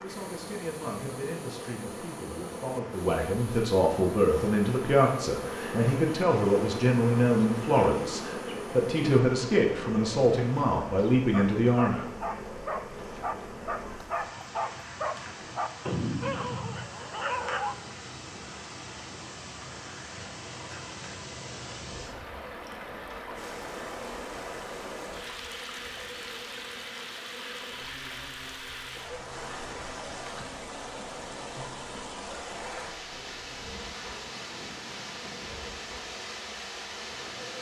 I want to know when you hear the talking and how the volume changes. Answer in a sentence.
You can hear the talking from 0.0 to 12.1 s, getting louder.